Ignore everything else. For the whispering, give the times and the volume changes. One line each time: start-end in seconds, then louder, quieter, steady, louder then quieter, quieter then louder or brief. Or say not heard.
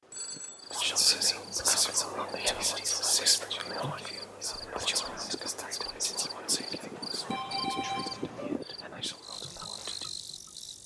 0.7-10.1 quieter.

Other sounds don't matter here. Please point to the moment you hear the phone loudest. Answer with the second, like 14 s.
8 s.